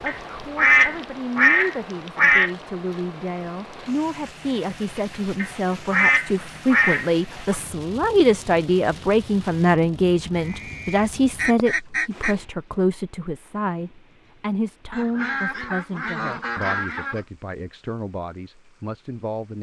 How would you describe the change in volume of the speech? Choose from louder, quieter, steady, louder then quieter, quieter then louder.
louder then quieter.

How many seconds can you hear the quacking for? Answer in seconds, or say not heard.
9 s.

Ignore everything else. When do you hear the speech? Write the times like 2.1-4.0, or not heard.
0.1-19.5.